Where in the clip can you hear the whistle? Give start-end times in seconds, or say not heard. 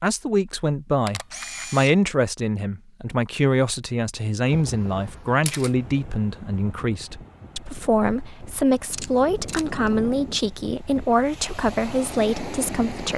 not heard.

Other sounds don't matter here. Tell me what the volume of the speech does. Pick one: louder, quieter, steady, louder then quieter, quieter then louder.
steady.